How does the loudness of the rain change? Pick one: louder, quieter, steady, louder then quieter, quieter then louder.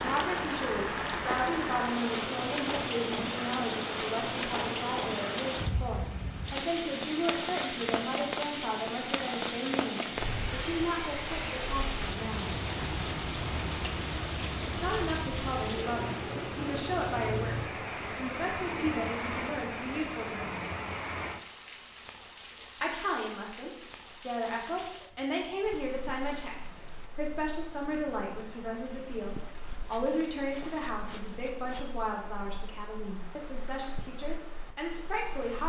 quieter.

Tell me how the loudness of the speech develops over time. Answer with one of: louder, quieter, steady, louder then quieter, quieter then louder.
steady.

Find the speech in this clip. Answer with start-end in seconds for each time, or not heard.
0.0-12.4, 14.7-20.6, 22.8-35.6.